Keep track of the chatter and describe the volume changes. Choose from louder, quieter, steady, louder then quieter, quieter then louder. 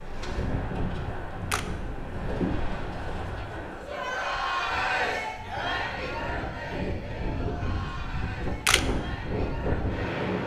louder then quieter.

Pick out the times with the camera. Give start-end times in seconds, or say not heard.
0.9-1.6, 8.1-8.8.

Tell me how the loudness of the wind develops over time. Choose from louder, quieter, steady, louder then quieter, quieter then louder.
quieter then louder.